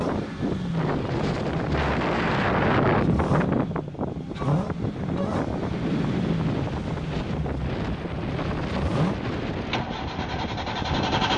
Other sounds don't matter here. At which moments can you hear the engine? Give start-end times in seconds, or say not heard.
0.0-11.3.